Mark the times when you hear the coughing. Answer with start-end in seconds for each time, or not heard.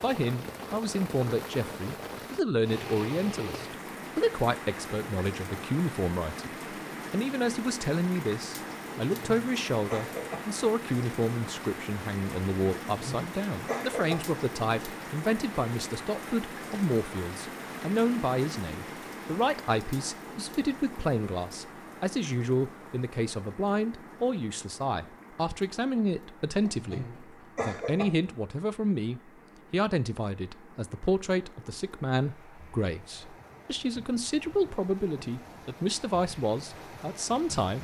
9.2-10.4, 12.8-14.2, 26.6-28.1.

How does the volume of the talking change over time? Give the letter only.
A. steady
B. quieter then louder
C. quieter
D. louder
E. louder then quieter
A.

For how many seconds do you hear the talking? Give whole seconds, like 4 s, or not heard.
38 s.